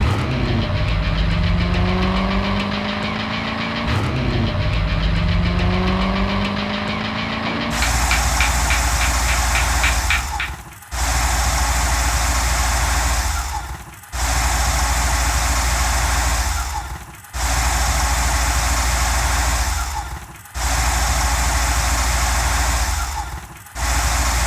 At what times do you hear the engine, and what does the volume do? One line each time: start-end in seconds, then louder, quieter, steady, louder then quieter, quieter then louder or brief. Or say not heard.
0.0-24.4 steady.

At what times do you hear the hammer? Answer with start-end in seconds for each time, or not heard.
7.5-10.5.